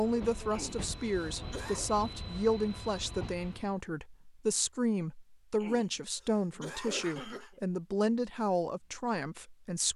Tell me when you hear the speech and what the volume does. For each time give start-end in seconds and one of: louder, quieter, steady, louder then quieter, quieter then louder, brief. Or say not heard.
0.0-9.9 steady.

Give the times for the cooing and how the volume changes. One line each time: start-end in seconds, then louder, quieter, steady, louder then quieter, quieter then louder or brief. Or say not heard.
not heard.